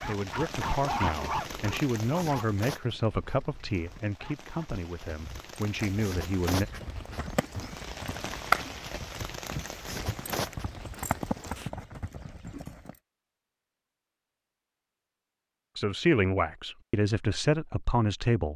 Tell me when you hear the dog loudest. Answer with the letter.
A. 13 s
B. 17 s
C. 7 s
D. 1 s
D.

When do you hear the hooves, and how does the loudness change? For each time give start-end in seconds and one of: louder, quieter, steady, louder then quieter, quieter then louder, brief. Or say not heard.
5.1-12.9 louder then quieter.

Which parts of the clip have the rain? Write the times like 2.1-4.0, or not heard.
0.0-11.7.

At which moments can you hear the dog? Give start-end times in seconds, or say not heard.
0.0-4.8.